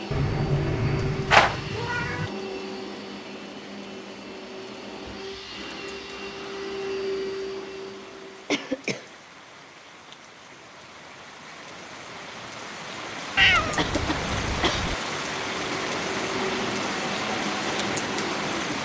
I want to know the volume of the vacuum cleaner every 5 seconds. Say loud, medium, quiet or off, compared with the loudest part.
loud, loud, off, loud.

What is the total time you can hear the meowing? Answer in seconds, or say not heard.
3 s.